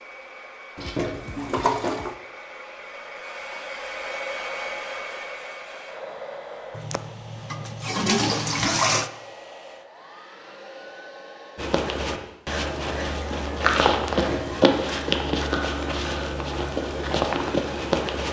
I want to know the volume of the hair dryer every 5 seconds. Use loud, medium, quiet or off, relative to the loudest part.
loud, loud, medium, off.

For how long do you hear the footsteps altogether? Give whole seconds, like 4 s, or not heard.
7 s.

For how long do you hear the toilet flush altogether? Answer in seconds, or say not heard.
4 s.